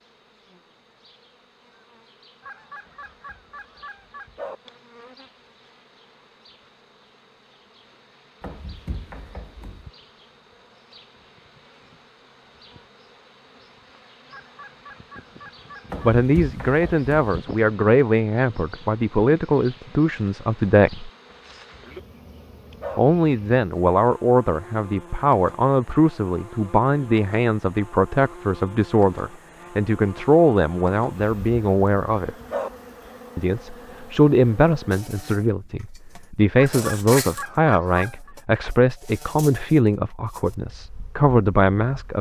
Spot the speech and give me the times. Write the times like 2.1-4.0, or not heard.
16.0-21.1, 22.9-32.4, 33.4-42.1.